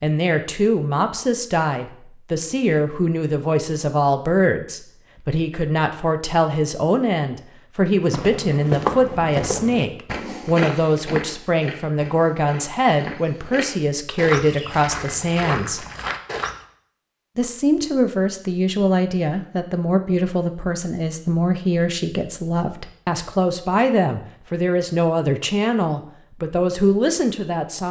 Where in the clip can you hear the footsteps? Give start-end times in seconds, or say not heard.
8.0-16.6.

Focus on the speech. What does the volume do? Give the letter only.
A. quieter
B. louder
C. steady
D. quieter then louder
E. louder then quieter
C.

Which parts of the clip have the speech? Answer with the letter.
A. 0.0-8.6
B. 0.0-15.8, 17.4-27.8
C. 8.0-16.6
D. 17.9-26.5
B.